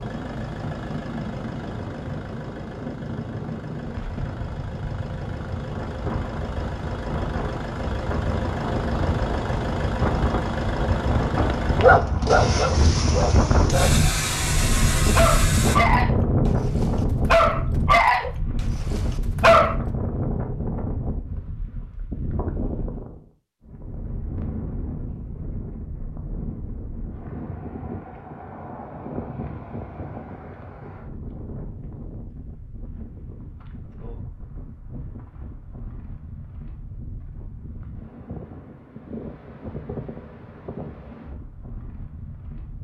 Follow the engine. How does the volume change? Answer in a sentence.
The loudness of the engine goes up.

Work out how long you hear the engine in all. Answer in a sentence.
The engine can be heard for 16 seconds in total.